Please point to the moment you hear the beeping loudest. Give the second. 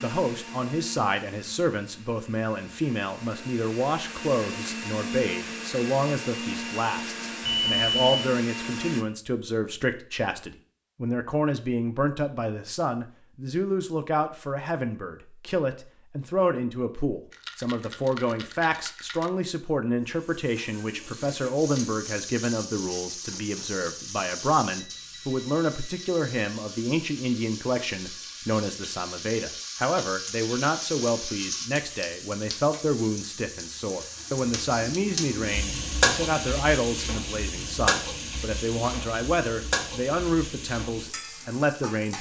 8 s.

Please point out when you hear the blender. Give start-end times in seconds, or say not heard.
0.0-9.1.